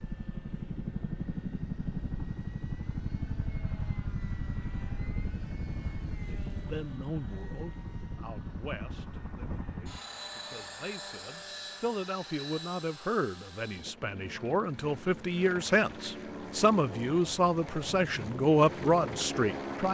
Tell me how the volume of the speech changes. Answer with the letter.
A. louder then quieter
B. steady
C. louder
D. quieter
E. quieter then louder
C.